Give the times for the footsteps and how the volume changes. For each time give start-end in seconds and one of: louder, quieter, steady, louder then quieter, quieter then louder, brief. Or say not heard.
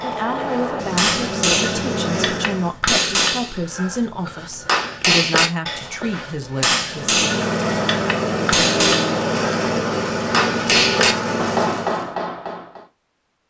not heard.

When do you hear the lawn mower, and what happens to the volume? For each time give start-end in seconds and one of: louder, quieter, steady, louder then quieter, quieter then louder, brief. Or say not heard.
0.0-2.8 brief
6.8-12.2 steady.